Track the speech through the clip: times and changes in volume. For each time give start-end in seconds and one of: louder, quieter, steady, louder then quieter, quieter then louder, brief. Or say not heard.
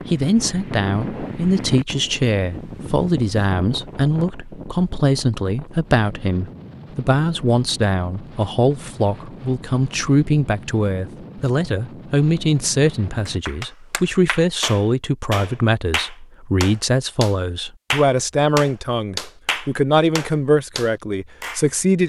0.1-22.0 steady.